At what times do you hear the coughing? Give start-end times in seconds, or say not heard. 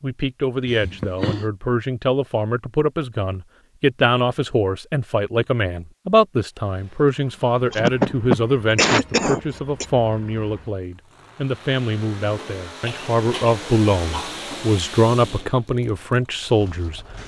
0.7-1.4, 7.7-9.8, 12.3-14.4.